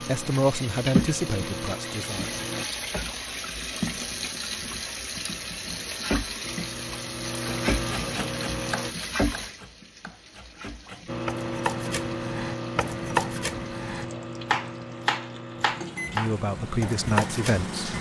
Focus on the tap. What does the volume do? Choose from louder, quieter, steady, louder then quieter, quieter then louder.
quieter.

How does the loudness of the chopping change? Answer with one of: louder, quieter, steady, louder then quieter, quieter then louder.
louder.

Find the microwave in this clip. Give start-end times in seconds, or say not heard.
0.0-2.6, 6.4-8.9, 11.1-17.9.